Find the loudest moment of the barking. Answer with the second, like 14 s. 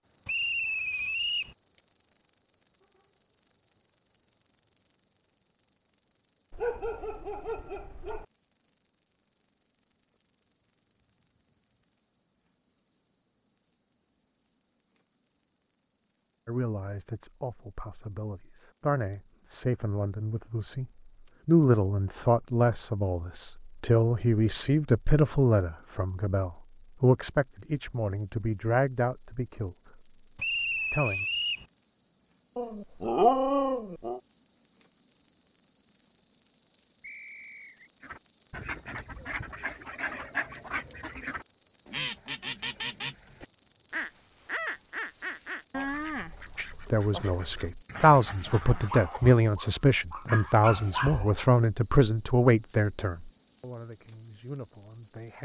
33 s.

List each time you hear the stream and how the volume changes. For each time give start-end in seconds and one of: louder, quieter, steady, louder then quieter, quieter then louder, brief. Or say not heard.
not heard.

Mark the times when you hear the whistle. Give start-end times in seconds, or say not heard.
0.2-1.6, 30.4-31.6, 37.0-37.9.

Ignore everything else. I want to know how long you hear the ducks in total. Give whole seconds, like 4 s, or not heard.
11 s.